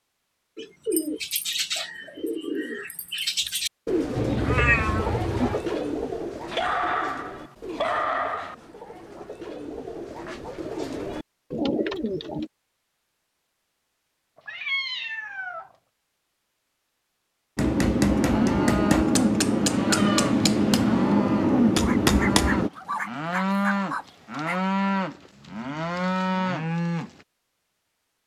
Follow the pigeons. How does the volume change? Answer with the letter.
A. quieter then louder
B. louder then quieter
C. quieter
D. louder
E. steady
A.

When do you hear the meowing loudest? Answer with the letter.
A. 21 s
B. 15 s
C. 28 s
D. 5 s
D.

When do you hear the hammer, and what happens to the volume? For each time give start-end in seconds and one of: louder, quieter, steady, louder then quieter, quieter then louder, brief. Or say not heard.
17.6-22.7 steady.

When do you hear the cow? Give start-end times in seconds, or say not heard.
18.0-27.1.